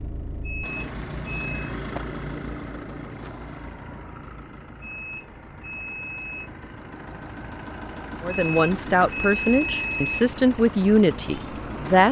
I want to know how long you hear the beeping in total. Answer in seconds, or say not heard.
5 s.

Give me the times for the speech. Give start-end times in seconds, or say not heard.
8.2-12.0.